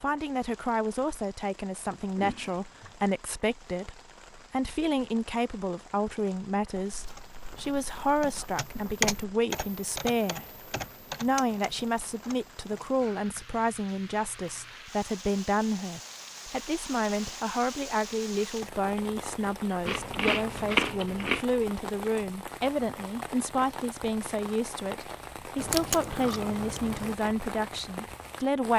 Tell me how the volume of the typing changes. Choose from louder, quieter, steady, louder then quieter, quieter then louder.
louder then quieter.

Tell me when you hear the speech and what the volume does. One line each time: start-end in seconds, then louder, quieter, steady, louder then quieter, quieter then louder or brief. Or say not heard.
0.0-28.7 steady.